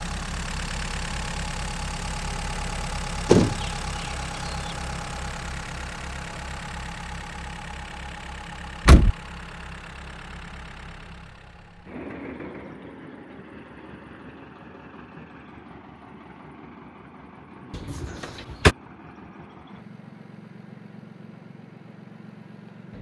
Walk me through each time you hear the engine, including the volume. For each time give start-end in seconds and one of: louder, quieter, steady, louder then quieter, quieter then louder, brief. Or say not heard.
0.0-22.9 quieter.